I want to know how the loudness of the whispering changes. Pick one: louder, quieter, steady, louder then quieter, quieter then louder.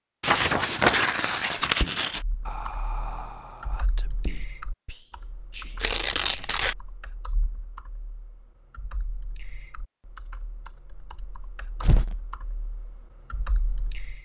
quieter then louder.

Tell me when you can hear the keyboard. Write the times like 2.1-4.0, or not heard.
2.1-14.2.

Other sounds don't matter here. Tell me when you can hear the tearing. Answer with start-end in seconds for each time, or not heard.
0.2-2.2, 5.8-6.8, 11.8-12.2.